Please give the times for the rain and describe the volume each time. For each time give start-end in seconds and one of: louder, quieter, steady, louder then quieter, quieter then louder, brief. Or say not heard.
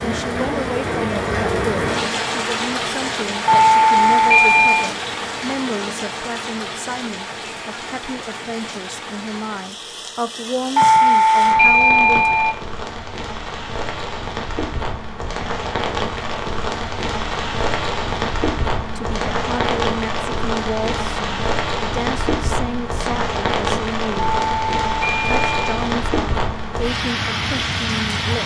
0.0-28.4 quieter then louder.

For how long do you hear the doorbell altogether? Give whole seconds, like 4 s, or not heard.
5 s.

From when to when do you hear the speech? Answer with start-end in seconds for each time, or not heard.
0.0-12.3, 18.9-24.2, 25.5-28.4.